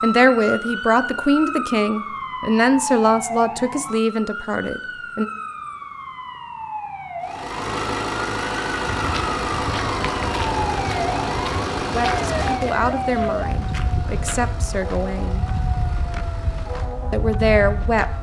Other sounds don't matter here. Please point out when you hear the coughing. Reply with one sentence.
You can't hear the coughing here.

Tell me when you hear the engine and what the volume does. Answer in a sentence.
You can hear the engine from 7.2 to 18.1 s, getting quieter.